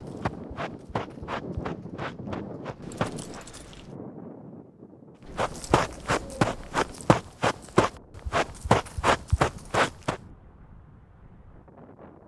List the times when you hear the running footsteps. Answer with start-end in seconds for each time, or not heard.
0.0-3.5, 5.3-10.2.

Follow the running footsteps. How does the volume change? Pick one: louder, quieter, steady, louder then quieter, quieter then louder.
louder.